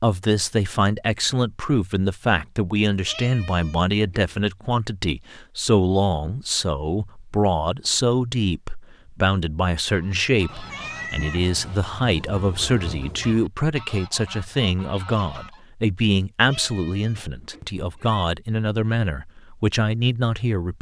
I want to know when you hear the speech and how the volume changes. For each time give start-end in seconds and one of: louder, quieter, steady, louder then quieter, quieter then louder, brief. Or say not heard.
0.0-20.7 steady.